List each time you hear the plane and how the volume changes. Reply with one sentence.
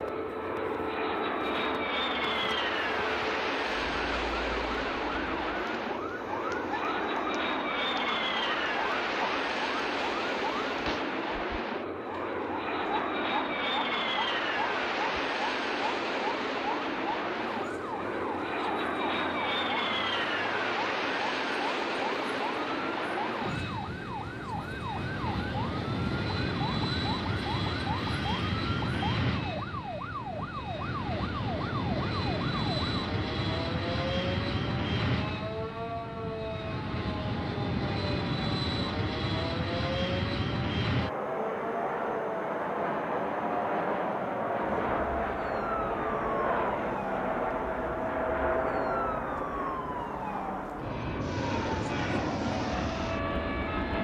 You can hear the plane from 0.0 to 53.9 s, at a steady volume.